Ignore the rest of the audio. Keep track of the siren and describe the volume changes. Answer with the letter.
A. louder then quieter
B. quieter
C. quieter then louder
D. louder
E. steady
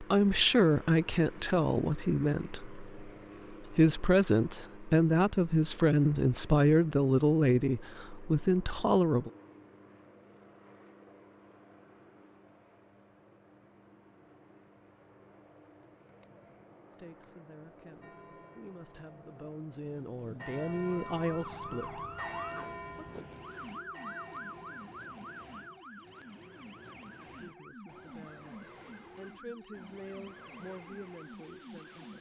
B.